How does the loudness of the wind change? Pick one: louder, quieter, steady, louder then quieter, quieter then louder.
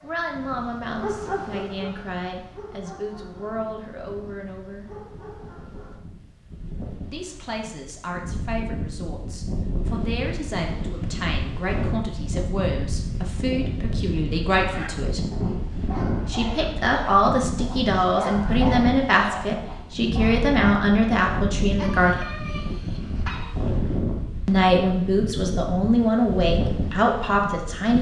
louder.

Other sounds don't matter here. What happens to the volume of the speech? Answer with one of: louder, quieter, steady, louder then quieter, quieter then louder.
louder.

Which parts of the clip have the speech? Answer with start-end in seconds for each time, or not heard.
0.0-4.9, 7.1-15.2, 16.2-22.1, 24.4-27.9.